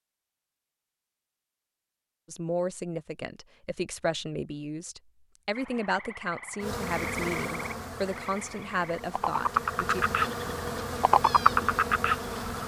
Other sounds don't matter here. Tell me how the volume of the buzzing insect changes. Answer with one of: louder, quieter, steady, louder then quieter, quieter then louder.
quieter then louder.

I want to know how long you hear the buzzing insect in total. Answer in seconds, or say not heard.
6 s.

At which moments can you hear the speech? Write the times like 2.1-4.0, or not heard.
2.2-10.1.